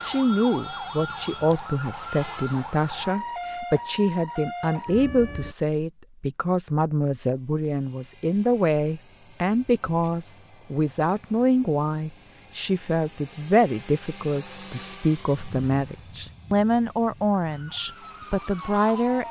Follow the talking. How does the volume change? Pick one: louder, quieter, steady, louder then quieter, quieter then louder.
steady.